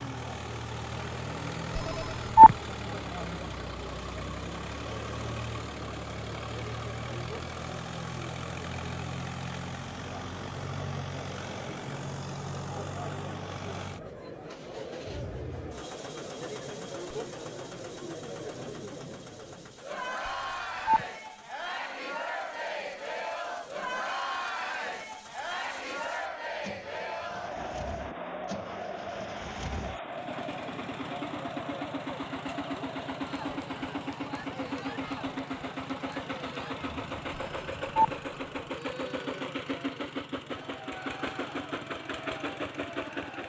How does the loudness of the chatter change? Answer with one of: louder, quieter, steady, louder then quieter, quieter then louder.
louder then quieter.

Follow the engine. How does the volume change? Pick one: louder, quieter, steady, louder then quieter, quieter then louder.
quieter then louder.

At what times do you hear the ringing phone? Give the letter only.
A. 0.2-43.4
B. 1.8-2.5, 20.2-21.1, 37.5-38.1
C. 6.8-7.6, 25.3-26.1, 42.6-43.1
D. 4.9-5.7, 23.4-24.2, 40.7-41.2
B.